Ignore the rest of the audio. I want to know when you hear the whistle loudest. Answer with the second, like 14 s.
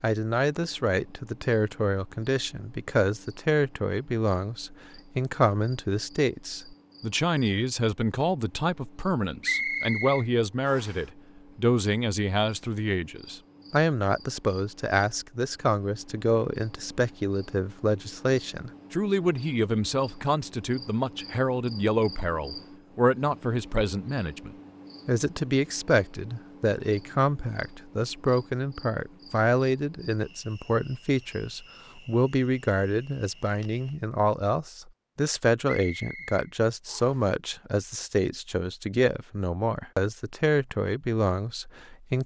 10 s.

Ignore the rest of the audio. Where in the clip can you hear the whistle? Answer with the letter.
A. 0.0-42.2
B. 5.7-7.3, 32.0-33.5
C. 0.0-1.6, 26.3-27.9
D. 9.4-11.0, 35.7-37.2
D.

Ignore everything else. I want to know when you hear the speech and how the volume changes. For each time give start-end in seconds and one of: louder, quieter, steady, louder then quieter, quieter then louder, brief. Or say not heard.
0.0-42.2 steady.